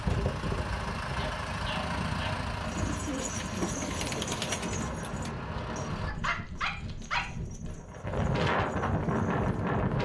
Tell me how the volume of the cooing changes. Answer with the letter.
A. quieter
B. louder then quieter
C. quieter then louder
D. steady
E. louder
A.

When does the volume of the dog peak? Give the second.
7 s.